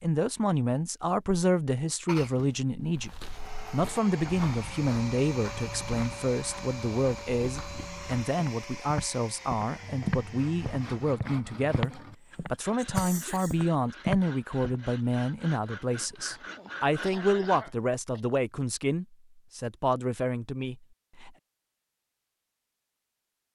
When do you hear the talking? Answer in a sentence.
The talking can be heard from 0.0 to 21.3 s.